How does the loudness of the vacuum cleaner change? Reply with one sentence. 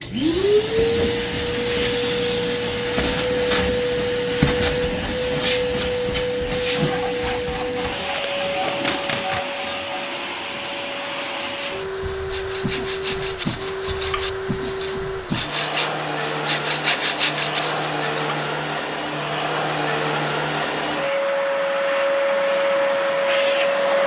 The loudness of the vacuum cleaner goes down, then up.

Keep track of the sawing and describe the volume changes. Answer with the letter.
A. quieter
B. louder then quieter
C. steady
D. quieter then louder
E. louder
E.